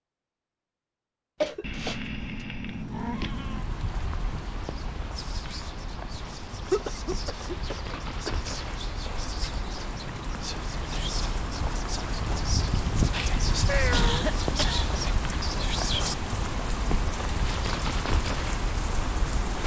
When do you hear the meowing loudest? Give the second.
14 s.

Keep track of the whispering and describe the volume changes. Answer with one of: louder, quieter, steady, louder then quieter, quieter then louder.
louder.